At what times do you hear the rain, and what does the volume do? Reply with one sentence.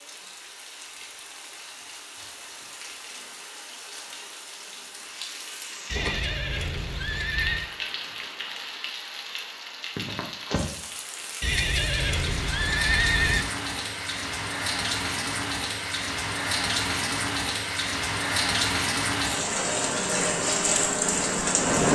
You can hear the rain from 0.0 to 21.8 s, getting louder.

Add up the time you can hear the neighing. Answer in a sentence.
You can hear the neighing for 4 seconds altogether.